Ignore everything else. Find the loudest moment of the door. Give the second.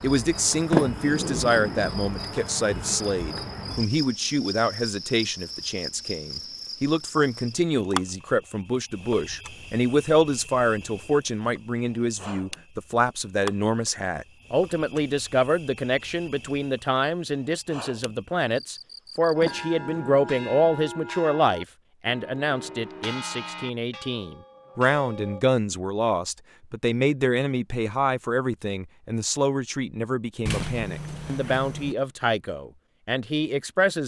1 s.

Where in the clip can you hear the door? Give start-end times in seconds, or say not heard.
0.7-2.0, 19.4-20.8, 30.4-31.9.